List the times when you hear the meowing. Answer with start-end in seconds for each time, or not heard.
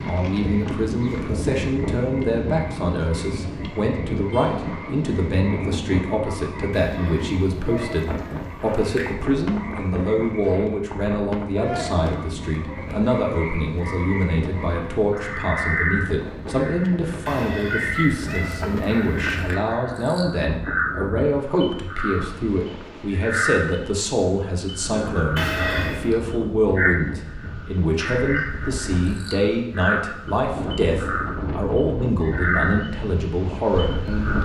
6.8-9.2, 17.2-19.6, 25.4-26.1.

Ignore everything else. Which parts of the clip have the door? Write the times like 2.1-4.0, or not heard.
not heard.